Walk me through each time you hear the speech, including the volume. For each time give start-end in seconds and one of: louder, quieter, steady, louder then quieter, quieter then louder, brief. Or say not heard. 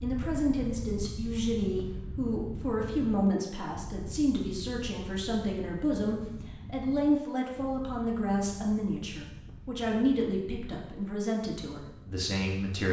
0.0-12.8 steady.